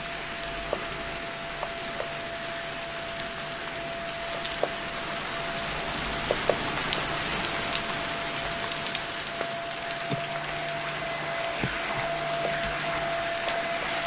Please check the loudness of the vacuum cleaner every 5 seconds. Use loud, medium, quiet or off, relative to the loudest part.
medium, medium, loud.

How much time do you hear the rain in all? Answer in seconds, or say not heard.
14 s.